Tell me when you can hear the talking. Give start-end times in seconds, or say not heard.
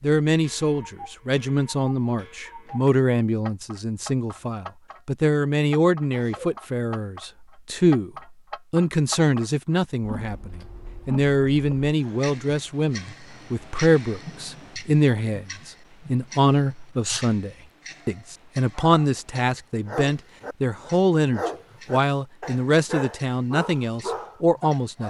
0.0-8.1, 8.7-25.0.